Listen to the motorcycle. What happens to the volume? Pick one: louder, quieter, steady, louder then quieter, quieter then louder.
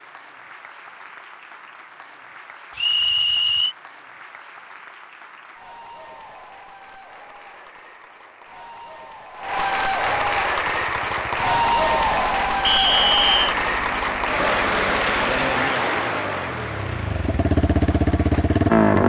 louder.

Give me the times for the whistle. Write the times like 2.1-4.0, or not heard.
2.8-3.8, 12.7-13.6.